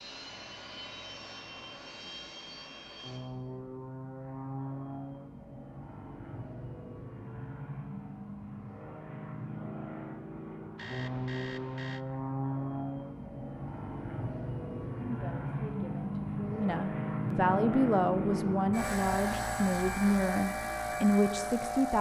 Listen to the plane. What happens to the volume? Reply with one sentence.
The volume of the plane goes up.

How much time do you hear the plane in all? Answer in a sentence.
The plane can be heard for 22 seconds in total.